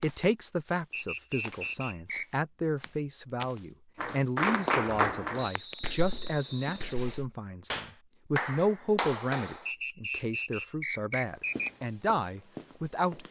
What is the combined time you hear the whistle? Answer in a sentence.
The whistle can be heard for 5 seconds in total.